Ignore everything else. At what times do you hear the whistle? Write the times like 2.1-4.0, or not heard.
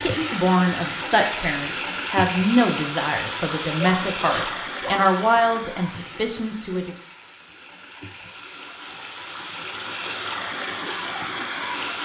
not heard.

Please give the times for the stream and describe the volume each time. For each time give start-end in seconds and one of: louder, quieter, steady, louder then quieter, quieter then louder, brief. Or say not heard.
0.0-12.0 quieter then louder.